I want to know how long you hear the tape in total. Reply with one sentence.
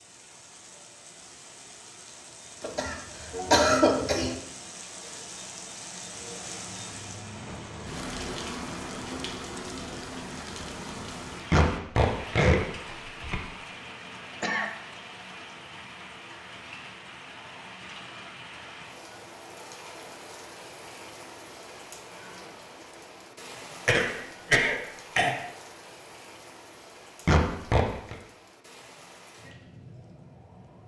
You can hear the tape for 2 seconds altogether.